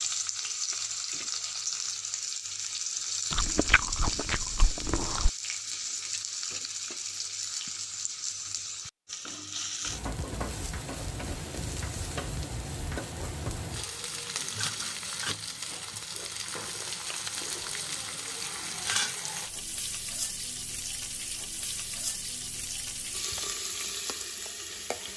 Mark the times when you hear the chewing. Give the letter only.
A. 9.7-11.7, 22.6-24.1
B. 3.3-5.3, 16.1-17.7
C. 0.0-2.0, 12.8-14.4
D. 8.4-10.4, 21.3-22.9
B.